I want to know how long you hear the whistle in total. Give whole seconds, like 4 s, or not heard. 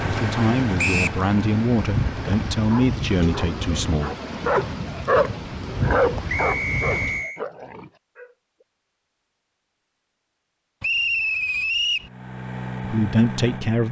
3 s.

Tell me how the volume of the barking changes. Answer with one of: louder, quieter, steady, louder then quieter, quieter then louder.
louder then quieter.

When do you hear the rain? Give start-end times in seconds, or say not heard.
0.0-7.2.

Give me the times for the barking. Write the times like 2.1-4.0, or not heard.
2.5-8.3.